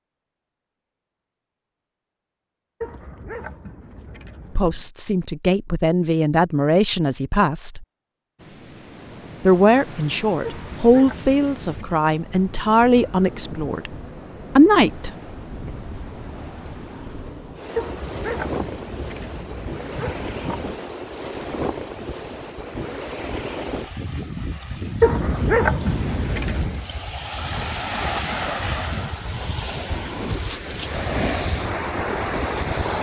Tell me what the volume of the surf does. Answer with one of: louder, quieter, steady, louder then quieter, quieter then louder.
louder.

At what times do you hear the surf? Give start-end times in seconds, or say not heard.
8.3-32.9.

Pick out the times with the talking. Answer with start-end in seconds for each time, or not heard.
4.5-7.8, 9.4-13.9, 14.6-15.1.